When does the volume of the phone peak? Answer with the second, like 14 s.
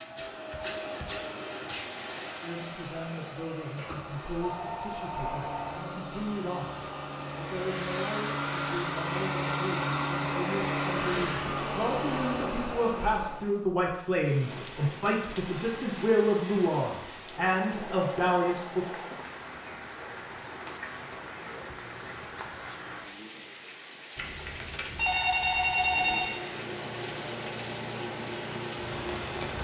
26 s.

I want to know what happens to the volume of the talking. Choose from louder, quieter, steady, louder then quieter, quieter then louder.
louder.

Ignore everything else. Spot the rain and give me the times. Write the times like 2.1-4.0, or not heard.
14.2-29.5.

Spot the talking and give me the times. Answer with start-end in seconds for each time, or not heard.
2.4-18.9.